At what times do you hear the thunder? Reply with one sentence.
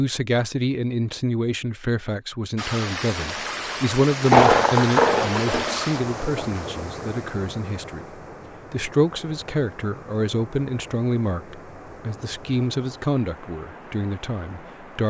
You can hear the thunder from 4.2 to 6.8 s.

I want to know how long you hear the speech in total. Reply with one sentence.
The speech can be heard for 15 seconds in total.